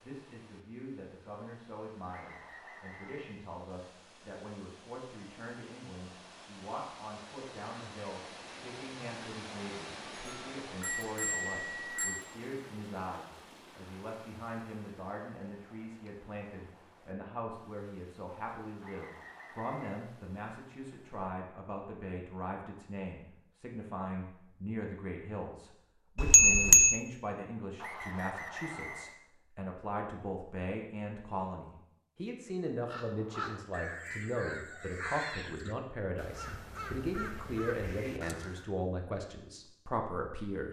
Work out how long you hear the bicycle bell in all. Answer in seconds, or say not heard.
3 s.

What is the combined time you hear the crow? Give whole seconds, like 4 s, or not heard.
6 s.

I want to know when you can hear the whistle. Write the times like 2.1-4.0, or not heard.
2.0-3.4, 18.8-19.9, 27.8-29.1.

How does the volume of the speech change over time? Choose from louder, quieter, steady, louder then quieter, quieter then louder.
louder.